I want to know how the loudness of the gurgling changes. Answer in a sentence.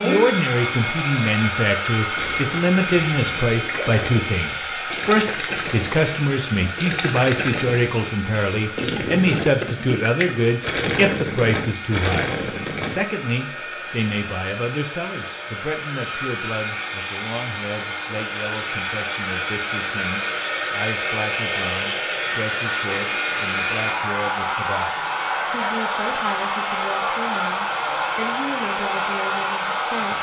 The volume of the gurgling goes up.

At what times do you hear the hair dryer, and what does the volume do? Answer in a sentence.
The hair dryer can be heard from 0.0 to 30.1 s, getting quieter then louder.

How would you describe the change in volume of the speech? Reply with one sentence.
The loudness of the speech goes down.